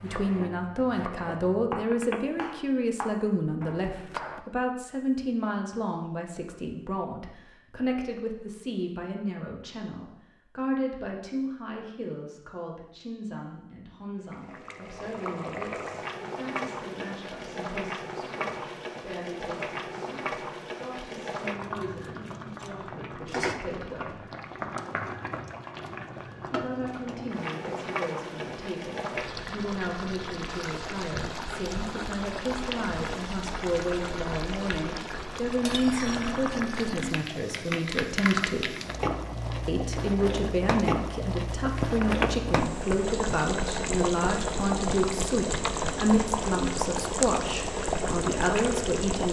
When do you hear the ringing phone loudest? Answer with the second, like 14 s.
42 s.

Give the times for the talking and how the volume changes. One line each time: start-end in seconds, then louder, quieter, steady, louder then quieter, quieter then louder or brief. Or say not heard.
0.0-24.2 quieter
26.5-38.8 louder
39.6-49.2 steady.